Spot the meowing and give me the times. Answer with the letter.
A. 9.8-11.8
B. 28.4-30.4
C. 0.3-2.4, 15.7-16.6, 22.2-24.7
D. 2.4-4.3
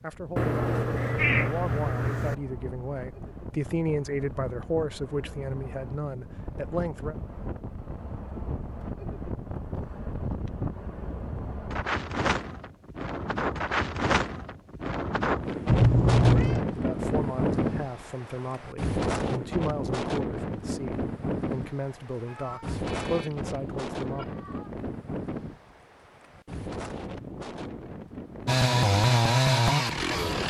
C.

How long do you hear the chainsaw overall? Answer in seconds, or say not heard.
2 s.